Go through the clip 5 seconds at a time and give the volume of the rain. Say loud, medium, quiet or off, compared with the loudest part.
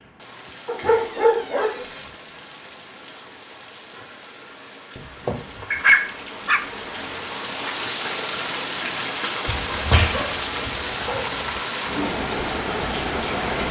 quiet, loud, loud.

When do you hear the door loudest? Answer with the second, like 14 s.
10 s.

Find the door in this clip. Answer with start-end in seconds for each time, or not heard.
0.8-2.1, 5.0-5.7, 9.4-10.3.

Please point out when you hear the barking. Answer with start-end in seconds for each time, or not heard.
0.7-1.9, 5.7-7.2, 10.1-11.6.